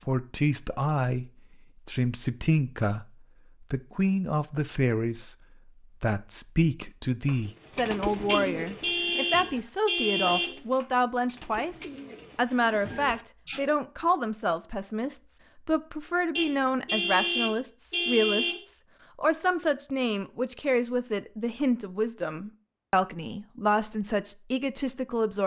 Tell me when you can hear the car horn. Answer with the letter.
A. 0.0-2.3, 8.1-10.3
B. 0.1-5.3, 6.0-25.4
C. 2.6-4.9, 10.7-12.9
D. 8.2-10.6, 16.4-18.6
D.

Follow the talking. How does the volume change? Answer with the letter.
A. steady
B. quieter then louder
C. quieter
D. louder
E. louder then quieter
A.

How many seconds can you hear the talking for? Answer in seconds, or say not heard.
25 s.